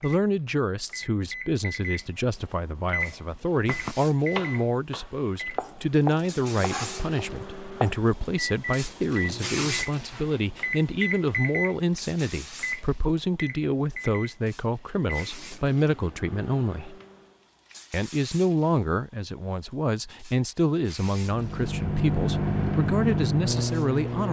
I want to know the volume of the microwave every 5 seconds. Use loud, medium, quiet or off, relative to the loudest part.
medium, medium, medium, quiet, loud.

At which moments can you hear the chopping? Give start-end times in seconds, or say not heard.
3.5-7.9.